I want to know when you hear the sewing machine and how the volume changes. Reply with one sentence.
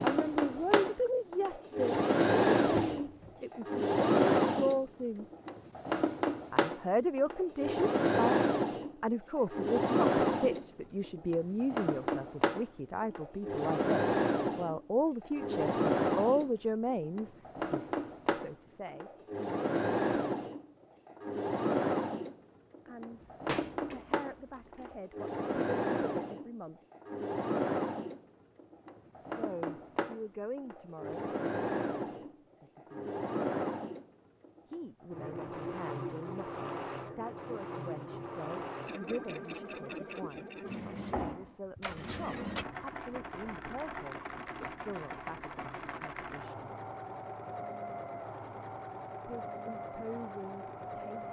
You can hear the sewing machine from 0.0 to 51.2 s, getting quieter.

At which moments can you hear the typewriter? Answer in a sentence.
You can't hear the typewriter here.